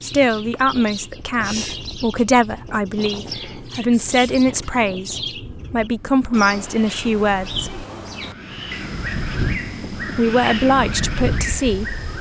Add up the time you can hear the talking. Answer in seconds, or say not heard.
10 s.